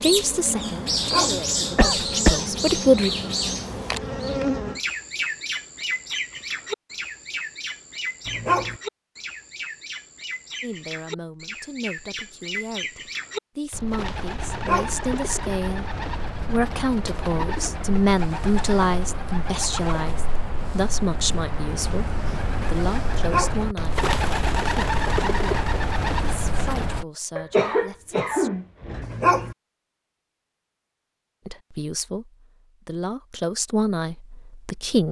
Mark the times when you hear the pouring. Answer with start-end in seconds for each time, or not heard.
not heard.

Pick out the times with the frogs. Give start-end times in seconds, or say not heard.
not heard.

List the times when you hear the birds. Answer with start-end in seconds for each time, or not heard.
0.0-27.1.